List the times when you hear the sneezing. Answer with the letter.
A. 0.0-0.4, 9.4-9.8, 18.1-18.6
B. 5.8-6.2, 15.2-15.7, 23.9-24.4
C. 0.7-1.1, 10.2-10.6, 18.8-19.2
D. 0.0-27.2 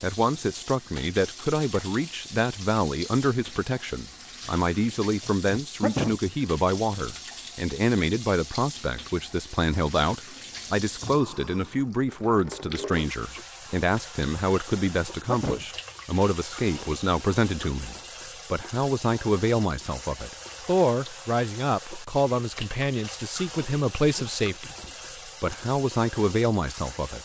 B.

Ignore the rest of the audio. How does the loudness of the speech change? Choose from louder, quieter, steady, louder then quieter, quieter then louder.
steady.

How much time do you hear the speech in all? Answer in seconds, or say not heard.
27 s.